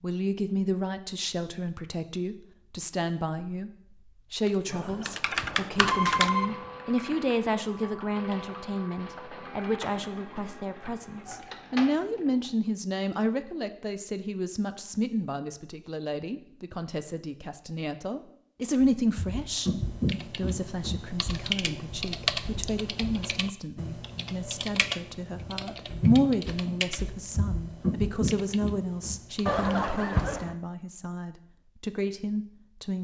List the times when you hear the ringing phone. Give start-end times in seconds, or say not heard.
4.7-6.5, 29.4-30.6.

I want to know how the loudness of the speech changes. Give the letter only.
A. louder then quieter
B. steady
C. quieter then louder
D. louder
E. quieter
B.